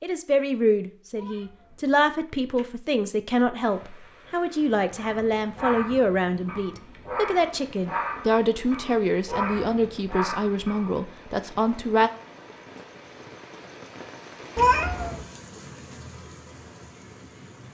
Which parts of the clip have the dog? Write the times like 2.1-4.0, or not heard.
5.0-10.9.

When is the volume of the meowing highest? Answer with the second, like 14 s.
15 s.